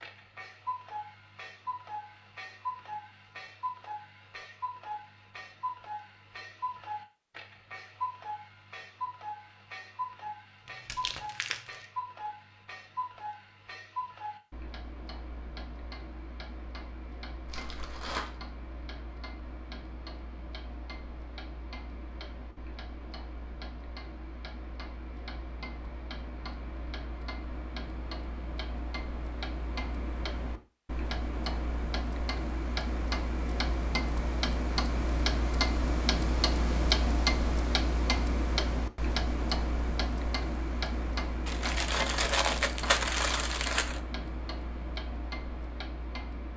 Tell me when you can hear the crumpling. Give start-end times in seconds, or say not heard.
10.7-11.8, 17.4-18.4, 41.5-44.0.